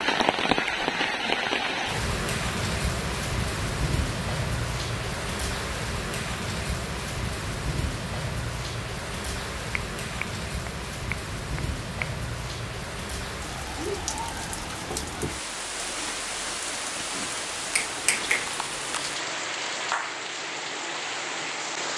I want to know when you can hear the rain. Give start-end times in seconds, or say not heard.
0.0-21.9.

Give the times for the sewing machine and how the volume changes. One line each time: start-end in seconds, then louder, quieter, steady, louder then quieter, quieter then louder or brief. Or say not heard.
not heard.